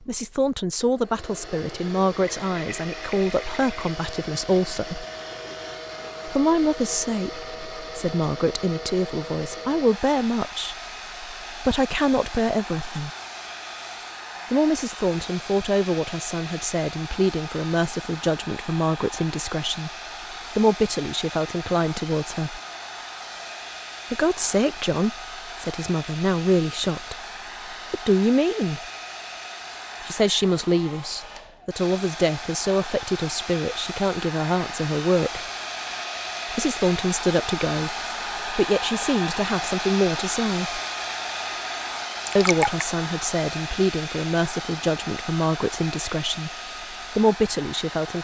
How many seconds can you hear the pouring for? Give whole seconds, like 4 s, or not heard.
2 s.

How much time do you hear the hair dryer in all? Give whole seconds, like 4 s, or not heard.
48 s.